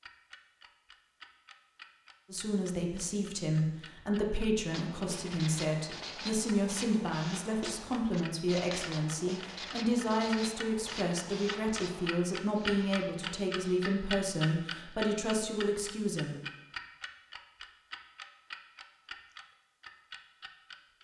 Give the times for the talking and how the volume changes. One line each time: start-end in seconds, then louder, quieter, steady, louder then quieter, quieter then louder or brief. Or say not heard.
2.3-16.4 steady.